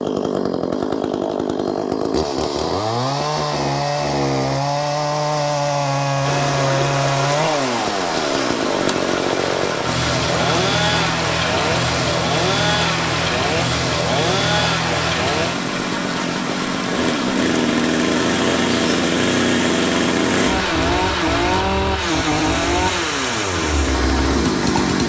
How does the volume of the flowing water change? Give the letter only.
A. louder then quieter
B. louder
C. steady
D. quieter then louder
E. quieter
C.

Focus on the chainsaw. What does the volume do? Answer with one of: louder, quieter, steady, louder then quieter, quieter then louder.
steady.